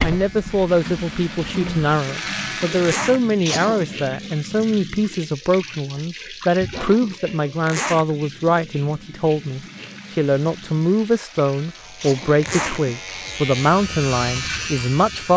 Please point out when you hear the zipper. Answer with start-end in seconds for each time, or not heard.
2.8-3.2, 7.7-8.1, 12.4-12.8.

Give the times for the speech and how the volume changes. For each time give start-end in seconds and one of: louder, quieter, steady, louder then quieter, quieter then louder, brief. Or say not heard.
0.0-15.3 steady.